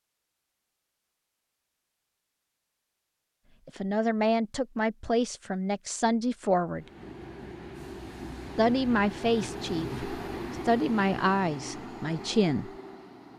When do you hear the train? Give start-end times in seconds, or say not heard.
6.8-13.3.